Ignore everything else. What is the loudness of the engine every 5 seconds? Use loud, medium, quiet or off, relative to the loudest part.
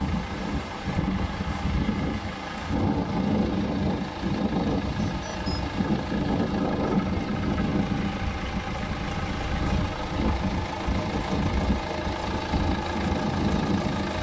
medium, loud, loud.